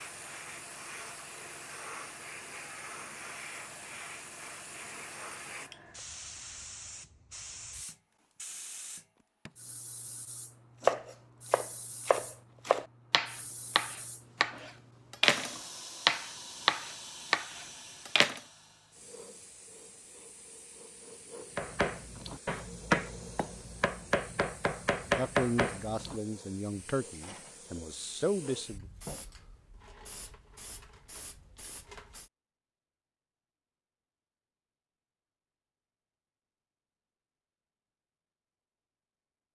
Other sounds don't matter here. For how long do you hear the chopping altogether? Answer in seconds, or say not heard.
12 s.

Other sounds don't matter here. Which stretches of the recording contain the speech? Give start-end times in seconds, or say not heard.
25.1-28.9.